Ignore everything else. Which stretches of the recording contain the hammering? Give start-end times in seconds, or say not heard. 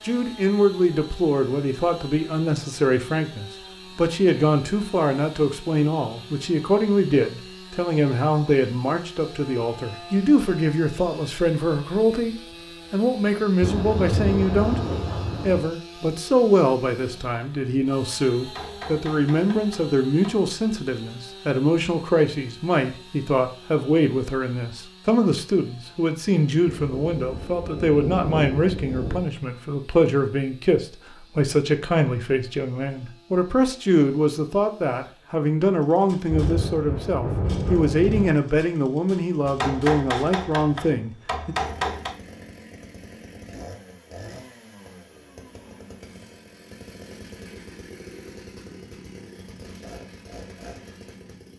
18.4-20.4, 39.5-42.1.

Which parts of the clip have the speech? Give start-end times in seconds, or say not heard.
0.0-41.5.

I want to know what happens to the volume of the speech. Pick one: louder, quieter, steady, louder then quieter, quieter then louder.
steady.